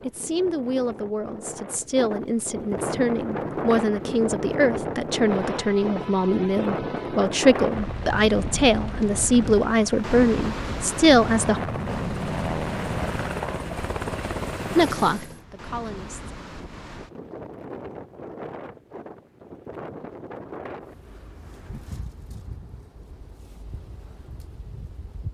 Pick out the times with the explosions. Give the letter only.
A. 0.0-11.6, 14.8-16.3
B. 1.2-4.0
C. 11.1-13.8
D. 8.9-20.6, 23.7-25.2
C.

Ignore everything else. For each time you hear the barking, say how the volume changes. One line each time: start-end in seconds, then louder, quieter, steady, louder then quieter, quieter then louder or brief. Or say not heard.
not heard.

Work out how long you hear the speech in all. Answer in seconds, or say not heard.
13 s.